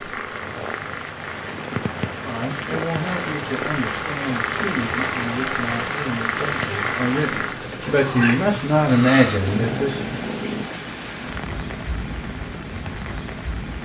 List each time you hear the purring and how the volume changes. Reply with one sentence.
You can hear the purring from 0.0 to 10.7 s, getting louder.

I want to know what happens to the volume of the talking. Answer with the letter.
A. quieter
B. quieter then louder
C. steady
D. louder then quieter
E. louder
E.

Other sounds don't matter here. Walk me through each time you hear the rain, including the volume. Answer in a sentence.
You can hear the rain from 0.0 to 13.8 s, at a steady volume.